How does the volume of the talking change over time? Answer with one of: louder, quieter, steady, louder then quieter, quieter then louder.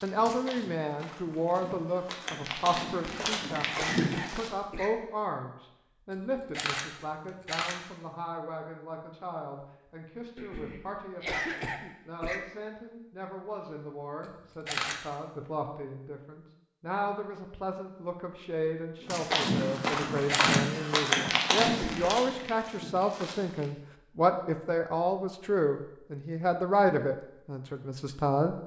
quieter then louder.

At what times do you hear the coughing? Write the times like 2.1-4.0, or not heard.
3.0-4.9, 10.3-12.4, 21.6-22.2.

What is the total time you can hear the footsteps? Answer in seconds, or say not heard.
9 s.